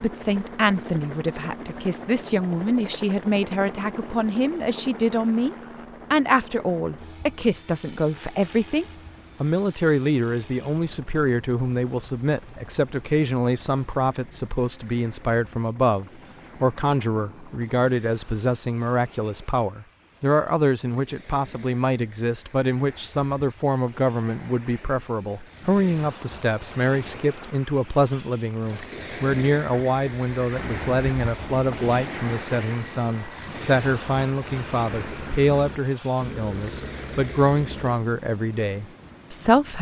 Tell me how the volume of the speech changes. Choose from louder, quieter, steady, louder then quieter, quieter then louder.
steady.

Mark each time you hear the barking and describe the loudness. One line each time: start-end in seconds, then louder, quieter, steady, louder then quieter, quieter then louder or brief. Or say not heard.
not heard.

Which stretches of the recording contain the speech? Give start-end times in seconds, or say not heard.
0.0-39.7.